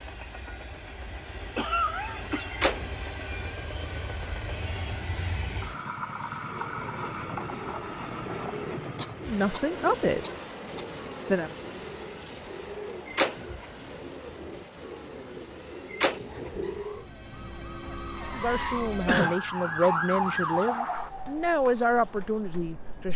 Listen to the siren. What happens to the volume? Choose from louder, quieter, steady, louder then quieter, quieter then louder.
louder then quieter.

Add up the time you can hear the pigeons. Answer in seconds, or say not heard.
11 s.